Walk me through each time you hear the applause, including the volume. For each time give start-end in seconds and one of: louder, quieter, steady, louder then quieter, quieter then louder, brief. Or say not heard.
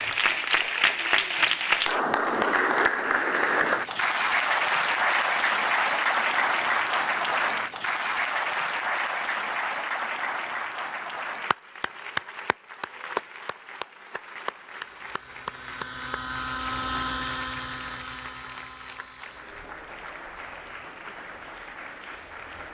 0.0-22.6 quieter.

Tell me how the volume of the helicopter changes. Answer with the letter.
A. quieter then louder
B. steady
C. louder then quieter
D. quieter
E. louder
C.